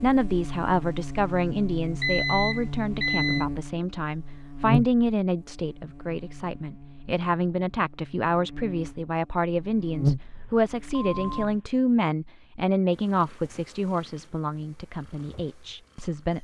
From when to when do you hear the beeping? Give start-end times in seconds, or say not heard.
2.0-3.5, 10.2-11.8.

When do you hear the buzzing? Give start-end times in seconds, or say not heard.
0.0-11.6.